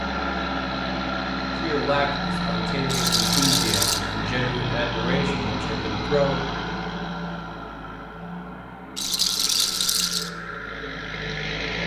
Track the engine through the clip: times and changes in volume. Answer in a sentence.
You can hear the engine from 0.0 to 11.8 s, getting quieter.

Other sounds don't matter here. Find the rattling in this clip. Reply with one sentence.
The rattling can be heard from 2.9 to 4.0 s and from 8.9 to 10.3 s.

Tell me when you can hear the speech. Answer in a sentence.
You can hear the speech from 1.6 to 6.5 s.